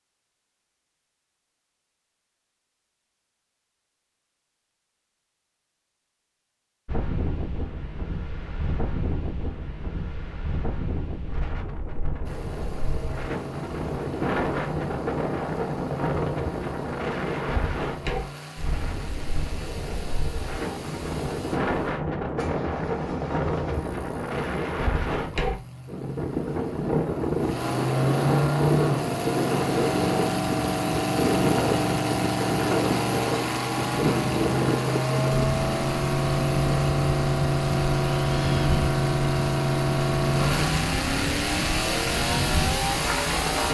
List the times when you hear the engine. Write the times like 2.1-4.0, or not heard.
12.2-43.7.